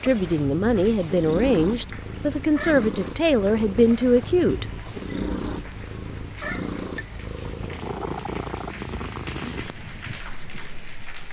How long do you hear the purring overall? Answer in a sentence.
You can hear the purring for 11 seconds altogether.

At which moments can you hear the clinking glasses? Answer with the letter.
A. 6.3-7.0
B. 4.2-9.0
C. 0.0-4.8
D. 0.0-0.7
A.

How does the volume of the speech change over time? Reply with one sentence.
The loudness of the speech stays about the same.